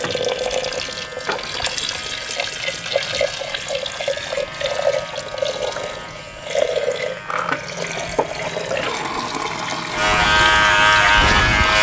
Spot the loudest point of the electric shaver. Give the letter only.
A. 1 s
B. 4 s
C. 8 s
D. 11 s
D.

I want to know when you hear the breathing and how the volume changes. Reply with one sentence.
You can't hear the breathing here.